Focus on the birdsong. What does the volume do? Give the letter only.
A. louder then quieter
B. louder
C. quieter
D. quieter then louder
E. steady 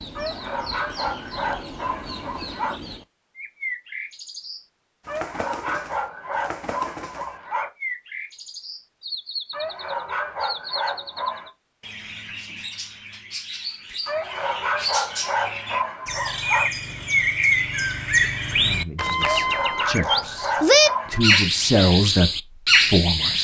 B.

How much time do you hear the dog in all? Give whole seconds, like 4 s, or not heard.
12 s.